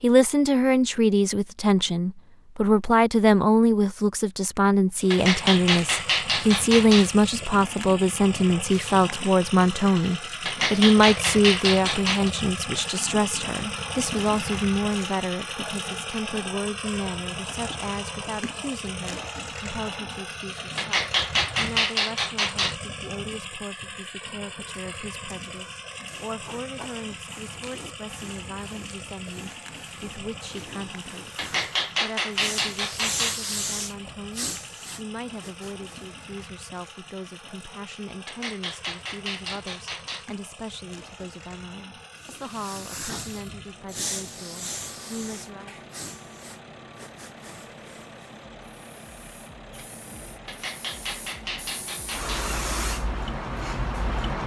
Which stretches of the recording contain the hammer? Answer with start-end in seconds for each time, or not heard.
5.1-7.1, 10.4-12.3, 20.8-22.8, 31.4-33.4, 38.2-40.2, 50.5-52.5.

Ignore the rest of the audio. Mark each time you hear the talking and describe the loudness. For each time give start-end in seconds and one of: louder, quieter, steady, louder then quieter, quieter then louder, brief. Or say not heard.
0.0-45.8 quieter.